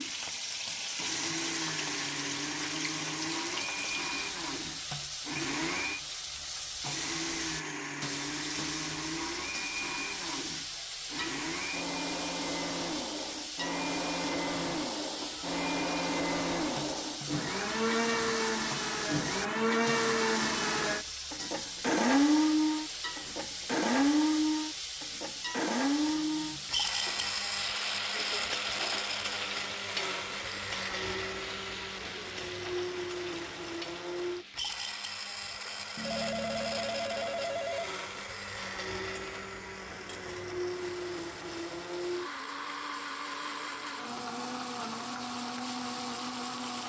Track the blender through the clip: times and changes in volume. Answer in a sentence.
You can hear the blender from 0.0 to 46.8 s, getting louder then quieter.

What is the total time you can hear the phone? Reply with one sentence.
The phone can be heard for 2 seconds in total.